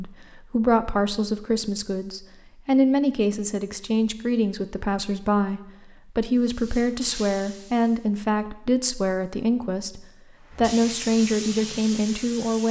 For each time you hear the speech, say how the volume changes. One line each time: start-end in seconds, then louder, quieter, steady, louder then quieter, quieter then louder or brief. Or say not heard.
0.0-12.6 steady.